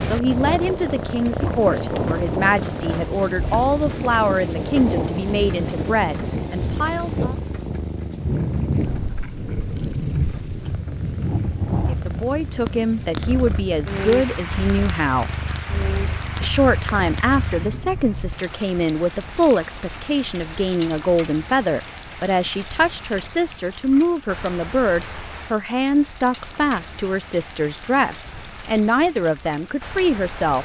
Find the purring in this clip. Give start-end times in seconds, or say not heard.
0.0-17.7.